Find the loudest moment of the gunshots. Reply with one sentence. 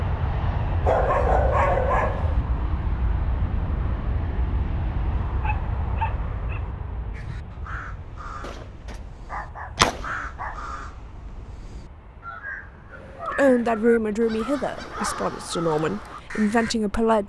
The loudest moment of the gunshots is at 10 seconds.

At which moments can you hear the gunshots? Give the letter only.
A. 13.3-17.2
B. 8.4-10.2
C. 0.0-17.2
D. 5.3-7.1
B.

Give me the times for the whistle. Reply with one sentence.
You can't hear the whistle here.